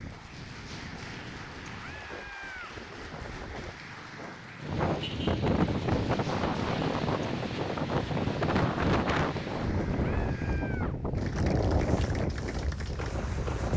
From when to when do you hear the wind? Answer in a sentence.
You can hear the wind from 0.0 to 13.7 s.